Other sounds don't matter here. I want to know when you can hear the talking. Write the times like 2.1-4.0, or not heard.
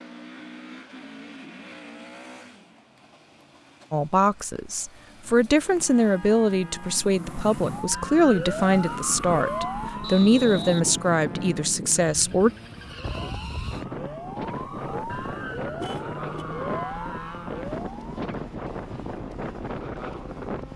3.9-12.5.